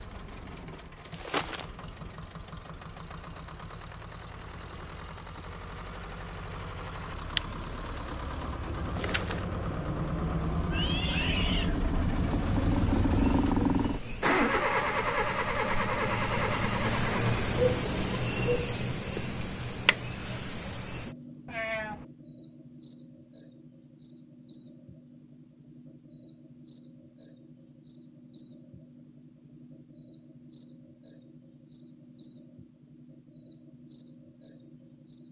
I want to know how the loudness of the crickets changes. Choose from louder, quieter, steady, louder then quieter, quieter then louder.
louder then quieter.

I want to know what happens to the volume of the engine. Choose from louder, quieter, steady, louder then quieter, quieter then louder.
louder.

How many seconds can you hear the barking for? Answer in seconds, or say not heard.
not heard.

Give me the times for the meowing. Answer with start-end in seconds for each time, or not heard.
10.7-11.8, 21.4-22.1.